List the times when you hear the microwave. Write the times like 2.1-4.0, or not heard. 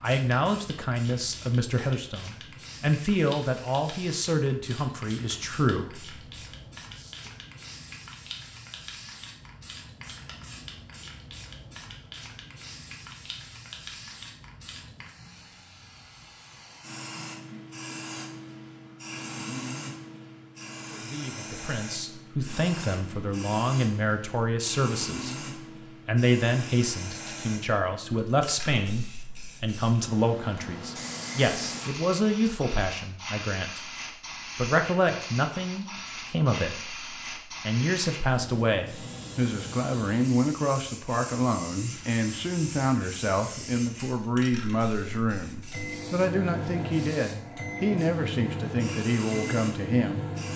45.6-50.5.